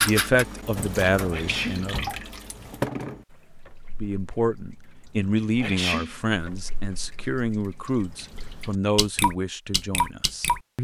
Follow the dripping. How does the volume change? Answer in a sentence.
The loudness of the dripping goes down, then up.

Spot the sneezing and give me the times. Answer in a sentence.
You can hear the sneezing from 1.3 to 1.9 s and from 5.6 to 6.2 s.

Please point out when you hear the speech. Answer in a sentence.
The speech can be heard from 0.0 to 1.9 s and from 4.0 to 10.7 s.